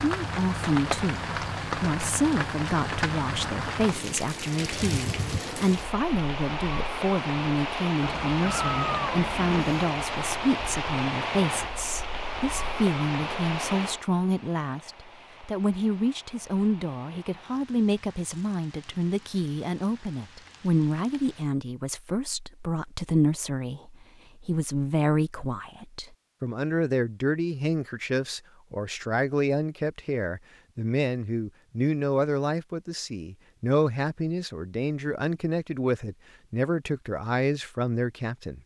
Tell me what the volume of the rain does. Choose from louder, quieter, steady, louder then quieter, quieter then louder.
quieter.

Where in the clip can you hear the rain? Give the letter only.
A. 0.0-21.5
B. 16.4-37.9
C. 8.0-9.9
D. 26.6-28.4
A.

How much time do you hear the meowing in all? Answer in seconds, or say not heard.
2 s.